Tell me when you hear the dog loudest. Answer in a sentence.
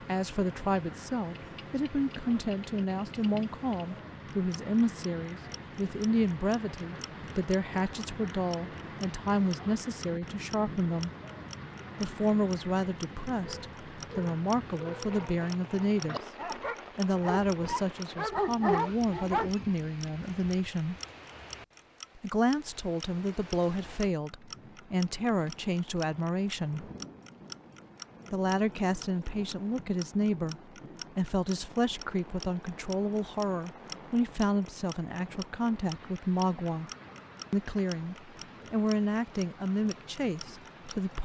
The loudest moment of the dog is at 19 seconds.